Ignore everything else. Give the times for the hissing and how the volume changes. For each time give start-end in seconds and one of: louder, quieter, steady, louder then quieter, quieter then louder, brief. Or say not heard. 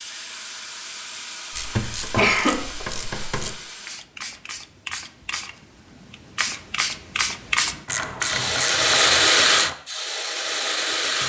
0.0-11.2 louder.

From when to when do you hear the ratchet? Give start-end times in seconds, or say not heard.
1.5-3.5, 7.8-9.8.